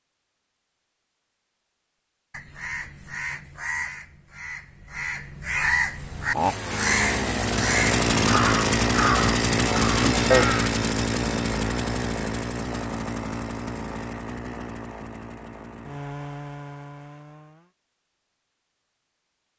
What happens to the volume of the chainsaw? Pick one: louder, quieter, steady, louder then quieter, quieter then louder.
quieter.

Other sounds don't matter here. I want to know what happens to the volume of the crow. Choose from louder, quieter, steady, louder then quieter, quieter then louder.
louder.